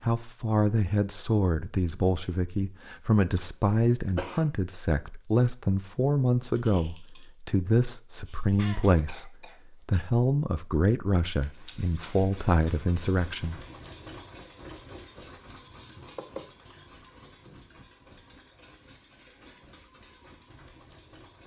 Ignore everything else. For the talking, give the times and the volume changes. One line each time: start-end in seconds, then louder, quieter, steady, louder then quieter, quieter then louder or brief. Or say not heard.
0.0-13.6 steady.